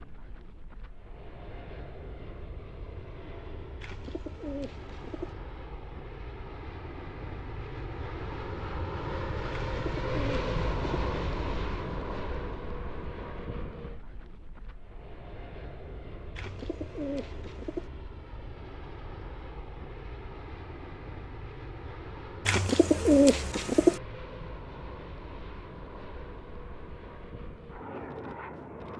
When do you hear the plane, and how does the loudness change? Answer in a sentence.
The plane can be heard from 0.0 to 28.9 s, getting louder then quieter.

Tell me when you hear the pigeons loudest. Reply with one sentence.
The loudest moment of the pigeons is at 23 seconds.